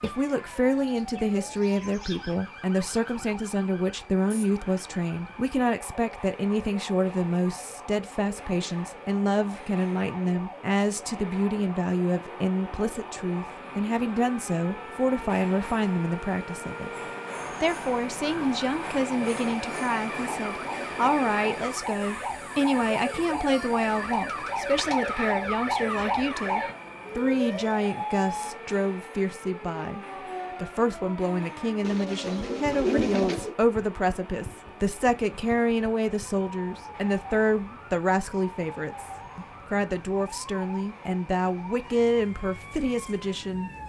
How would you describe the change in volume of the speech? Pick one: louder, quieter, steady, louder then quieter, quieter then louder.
steady.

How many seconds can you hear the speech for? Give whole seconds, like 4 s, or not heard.
43 s.